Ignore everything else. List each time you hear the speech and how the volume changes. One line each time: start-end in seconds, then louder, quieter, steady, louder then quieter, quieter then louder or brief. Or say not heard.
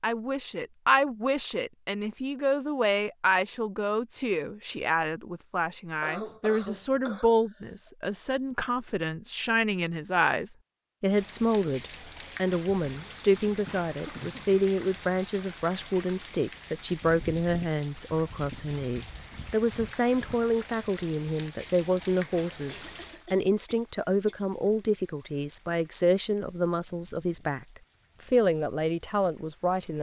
0.0-29.9 steady.